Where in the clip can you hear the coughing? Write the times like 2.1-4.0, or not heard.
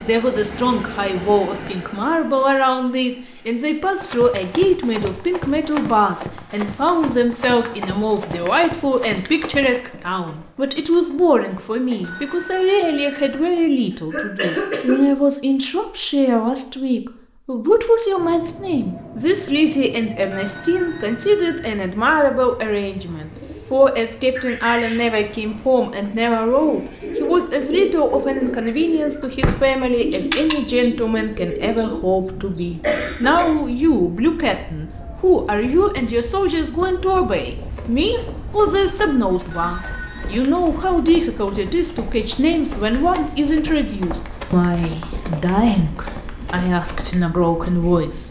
13.9-15.0, 32.8-33.5.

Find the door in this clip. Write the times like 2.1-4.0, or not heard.
not heard.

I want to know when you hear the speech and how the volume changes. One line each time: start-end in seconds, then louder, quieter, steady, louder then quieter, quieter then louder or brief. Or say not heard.
0.0-48.2 steady.